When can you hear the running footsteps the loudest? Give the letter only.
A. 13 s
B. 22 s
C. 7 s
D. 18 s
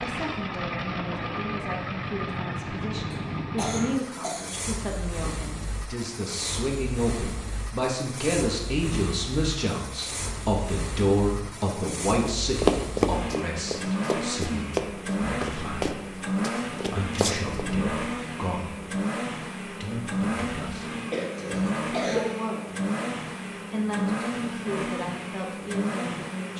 A.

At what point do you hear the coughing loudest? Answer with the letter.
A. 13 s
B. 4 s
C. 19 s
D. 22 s
D.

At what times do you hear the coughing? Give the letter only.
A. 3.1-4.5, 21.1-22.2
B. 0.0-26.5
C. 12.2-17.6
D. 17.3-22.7
A.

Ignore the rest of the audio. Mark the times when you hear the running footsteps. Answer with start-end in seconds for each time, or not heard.
12.2-17.6.